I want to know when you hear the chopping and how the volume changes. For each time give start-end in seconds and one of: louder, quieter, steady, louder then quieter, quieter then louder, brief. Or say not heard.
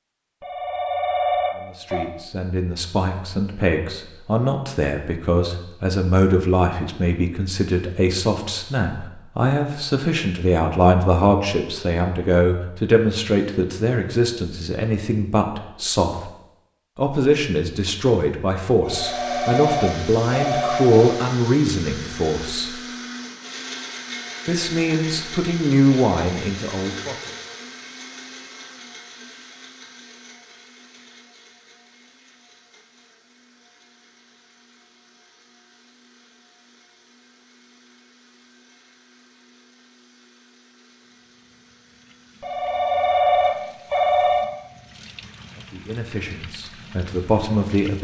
not heard.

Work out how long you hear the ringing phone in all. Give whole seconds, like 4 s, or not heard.
6 s.